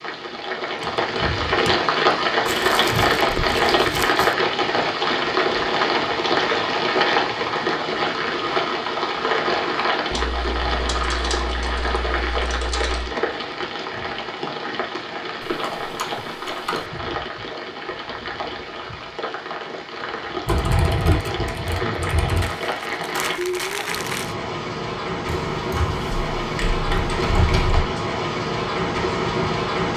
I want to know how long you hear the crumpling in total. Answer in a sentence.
You can hear the crumpling for 4 seconds altogether.